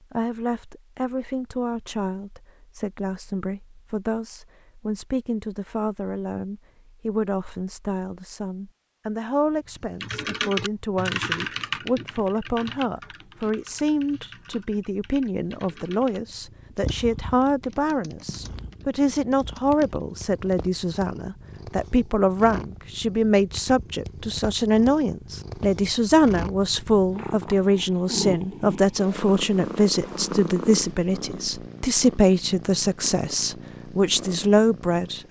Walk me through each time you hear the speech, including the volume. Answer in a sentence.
You can hear the speech from 0.1 to 35.2 s, getting louder.